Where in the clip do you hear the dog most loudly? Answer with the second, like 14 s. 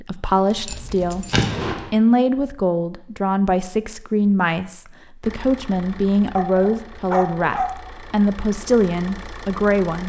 7 s.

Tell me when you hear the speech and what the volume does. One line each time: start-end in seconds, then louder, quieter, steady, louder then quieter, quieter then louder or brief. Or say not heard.
0.0-10.0 steady.